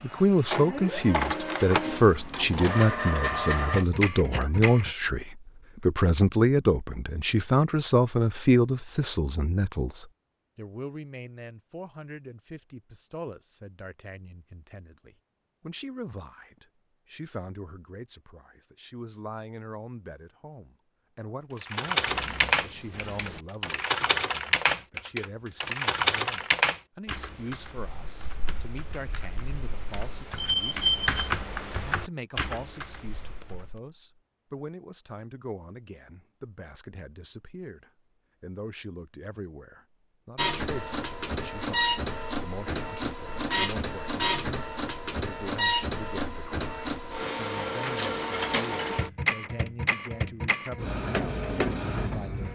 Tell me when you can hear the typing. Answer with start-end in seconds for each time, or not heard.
21.6-33.8.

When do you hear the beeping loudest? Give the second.
31 s.